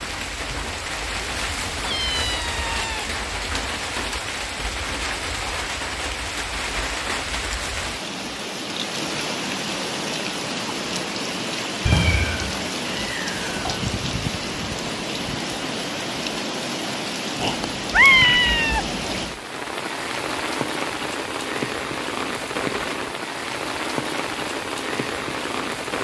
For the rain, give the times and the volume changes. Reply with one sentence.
The rain can be heard from 0.0 to 25.9 s, at a steady volume.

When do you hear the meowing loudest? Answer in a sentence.
The volume of the meowing peaks at 18 seconds.